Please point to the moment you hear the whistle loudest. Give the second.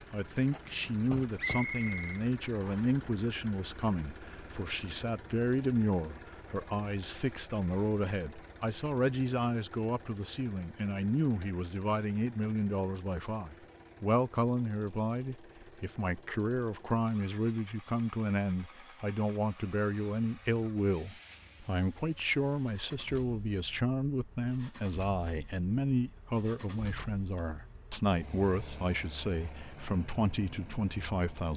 2 s.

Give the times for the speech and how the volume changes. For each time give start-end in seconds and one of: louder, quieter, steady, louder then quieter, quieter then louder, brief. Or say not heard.
0.1-31.5 steady.